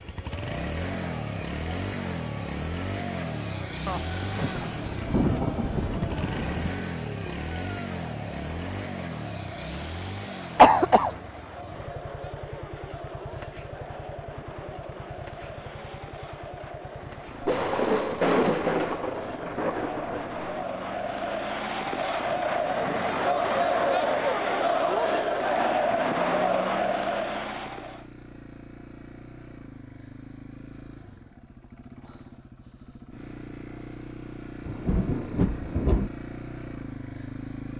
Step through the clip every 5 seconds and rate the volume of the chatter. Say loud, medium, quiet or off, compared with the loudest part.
quiet, quiet, quiet, quiet, loud, loud, off, off.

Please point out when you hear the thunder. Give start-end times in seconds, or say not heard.
3.9-6.8, 17.4-20.4, 34.6-36.1.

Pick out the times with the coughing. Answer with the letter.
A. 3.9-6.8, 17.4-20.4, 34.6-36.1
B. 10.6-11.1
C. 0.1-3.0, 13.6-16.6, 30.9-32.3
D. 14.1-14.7
B.